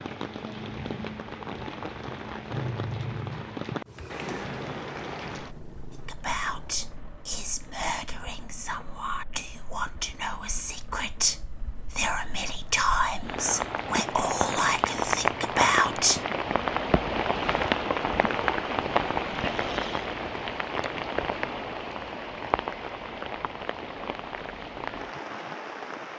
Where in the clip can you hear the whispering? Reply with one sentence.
The whispering can be heard from 5.9 to 16.2 s.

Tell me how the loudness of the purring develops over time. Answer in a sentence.
The volume of the purring goes up, then down.